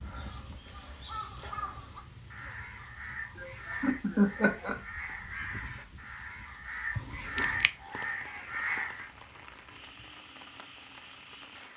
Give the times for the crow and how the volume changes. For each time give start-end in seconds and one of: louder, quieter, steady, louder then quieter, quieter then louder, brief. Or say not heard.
0.0-9.1 louder.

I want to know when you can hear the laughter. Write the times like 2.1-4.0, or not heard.
3.4-4.8.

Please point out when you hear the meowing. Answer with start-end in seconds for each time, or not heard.
7.0-7.7.